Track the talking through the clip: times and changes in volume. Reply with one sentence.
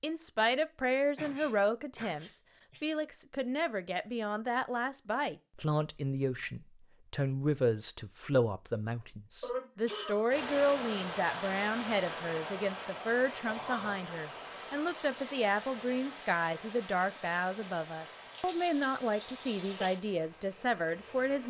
You can hear the talking from 0.0 to 21.4 s, at a steady volume.